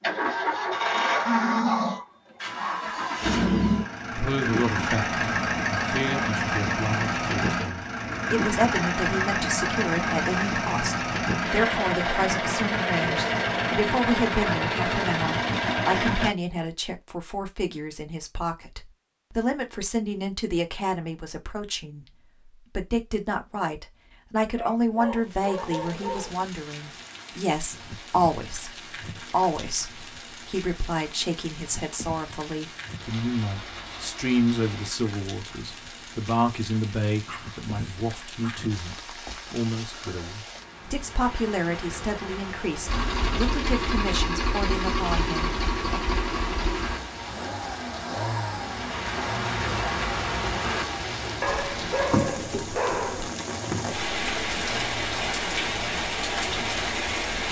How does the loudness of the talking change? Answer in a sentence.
The loudness of the talking stays about the same.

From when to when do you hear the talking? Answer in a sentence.
You can hear the talking from 4.1 to 46.0 s.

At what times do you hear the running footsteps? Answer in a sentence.
You can't hear the running footsteps here.